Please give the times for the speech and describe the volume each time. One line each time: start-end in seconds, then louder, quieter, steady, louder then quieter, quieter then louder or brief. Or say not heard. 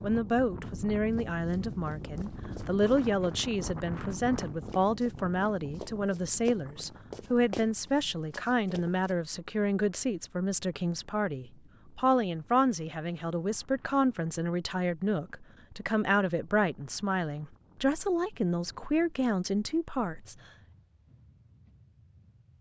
0.0-20.4 steady.